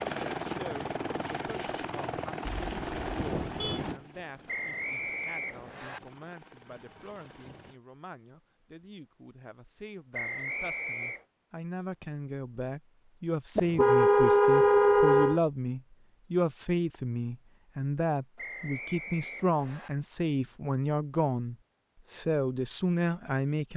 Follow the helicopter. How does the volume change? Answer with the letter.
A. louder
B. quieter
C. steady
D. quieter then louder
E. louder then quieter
B.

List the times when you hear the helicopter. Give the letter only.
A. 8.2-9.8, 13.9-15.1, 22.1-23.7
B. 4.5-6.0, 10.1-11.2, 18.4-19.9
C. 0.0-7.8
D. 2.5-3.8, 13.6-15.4
C.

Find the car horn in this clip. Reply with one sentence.
The car horn can be heard from 2.5 to 3.8 s and from 13.6 to 15.4 s.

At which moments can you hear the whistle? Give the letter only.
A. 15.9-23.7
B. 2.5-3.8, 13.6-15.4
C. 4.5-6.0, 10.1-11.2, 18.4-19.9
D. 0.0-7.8
C.